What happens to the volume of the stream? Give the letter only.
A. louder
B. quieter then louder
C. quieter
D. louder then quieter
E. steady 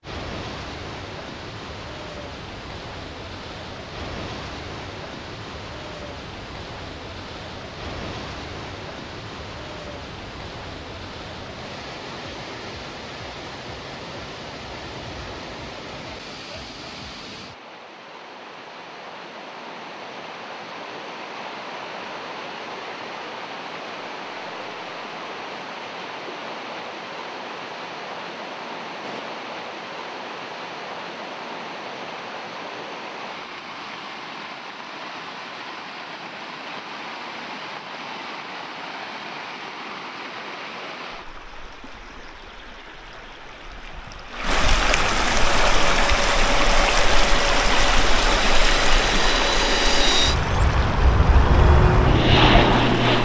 A.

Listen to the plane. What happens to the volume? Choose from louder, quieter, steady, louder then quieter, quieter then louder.
louder.